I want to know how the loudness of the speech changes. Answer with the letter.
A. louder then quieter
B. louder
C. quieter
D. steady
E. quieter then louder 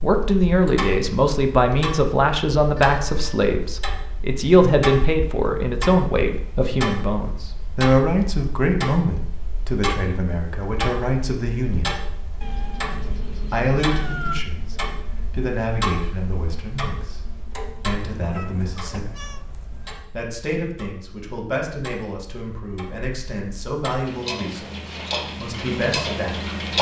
C.